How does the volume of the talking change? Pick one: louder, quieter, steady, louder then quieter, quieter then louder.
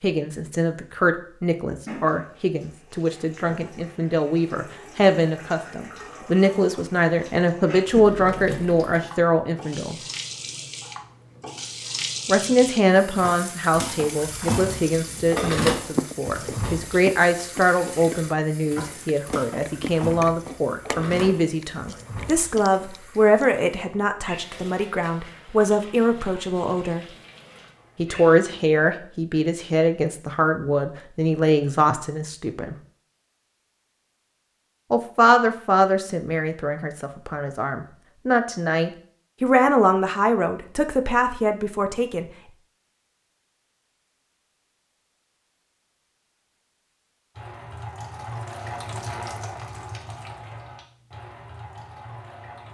steady.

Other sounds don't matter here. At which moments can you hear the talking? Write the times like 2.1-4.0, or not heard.
0.0-10.0, 12.2-27.1, 27.9-32.8, 34.9-42.2.